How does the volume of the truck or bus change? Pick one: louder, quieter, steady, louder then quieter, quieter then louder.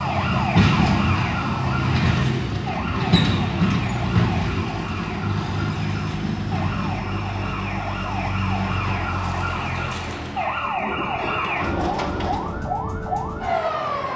quieter.